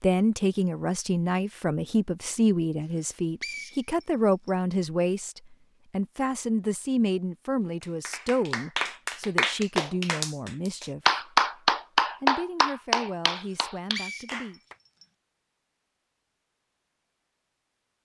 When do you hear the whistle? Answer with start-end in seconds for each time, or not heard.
3.0-4.5, 13.4-15.1.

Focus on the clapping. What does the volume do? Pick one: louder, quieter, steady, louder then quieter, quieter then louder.
louder then quieter.